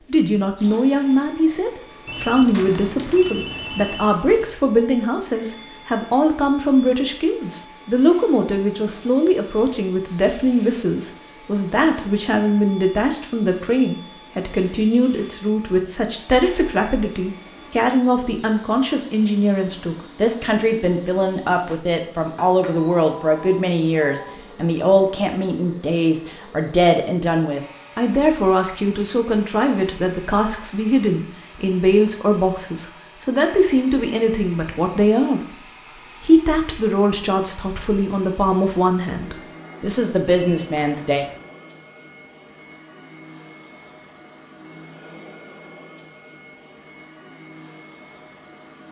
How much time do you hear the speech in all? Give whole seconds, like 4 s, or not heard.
41 s.